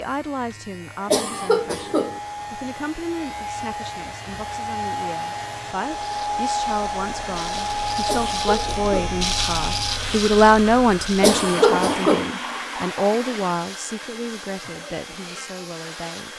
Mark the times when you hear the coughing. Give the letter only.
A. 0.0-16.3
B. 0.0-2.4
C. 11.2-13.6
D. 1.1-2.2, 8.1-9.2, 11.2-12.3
D.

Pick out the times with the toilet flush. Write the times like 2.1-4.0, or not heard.
11.2-13.6.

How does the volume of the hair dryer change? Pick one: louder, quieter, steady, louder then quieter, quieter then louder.
louder then quieter.